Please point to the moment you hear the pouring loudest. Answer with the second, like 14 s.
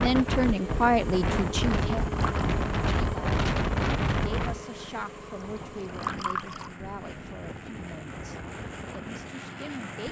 6 s.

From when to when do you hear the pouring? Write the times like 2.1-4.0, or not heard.
1.9-2.5, 5.5-6.7.